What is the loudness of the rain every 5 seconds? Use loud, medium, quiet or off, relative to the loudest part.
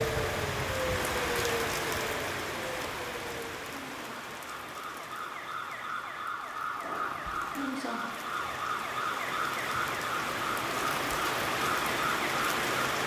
loud, medium, loud.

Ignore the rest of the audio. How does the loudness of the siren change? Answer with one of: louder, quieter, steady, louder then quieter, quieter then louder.
quieter then louder.